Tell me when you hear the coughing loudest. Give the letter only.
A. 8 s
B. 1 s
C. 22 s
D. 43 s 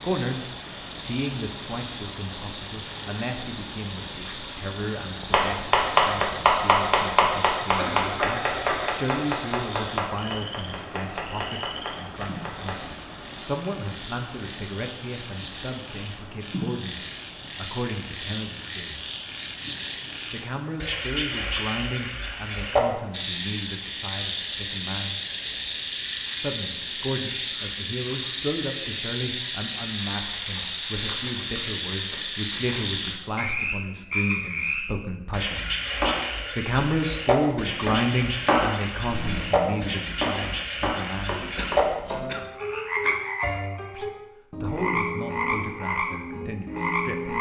A.